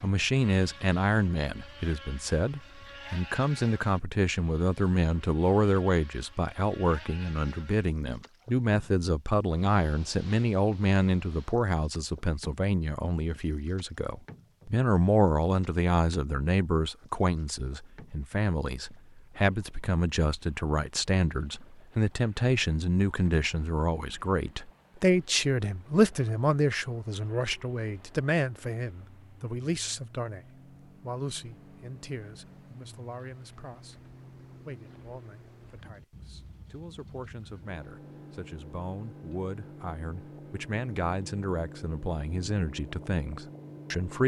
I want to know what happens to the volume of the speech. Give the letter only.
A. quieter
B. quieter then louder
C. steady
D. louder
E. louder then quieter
A.